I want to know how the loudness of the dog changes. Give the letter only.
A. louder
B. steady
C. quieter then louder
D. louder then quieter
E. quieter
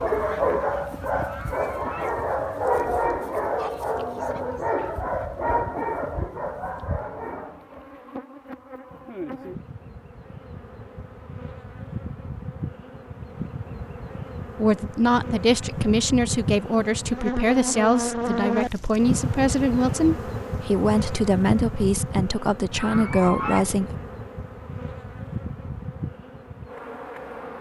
E.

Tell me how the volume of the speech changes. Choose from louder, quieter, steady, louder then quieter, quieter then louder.
steady.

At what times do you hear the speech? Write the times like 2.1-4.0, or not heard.
14.6-23.9.